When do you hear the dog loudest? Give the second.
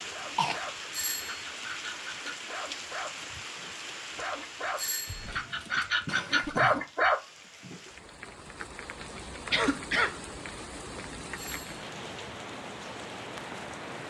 7 s.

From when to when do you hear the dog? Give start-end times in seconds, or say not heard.
0.1-7.9.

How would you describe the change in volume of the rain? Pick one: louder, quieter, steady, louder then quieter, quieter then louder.
quieter then louder.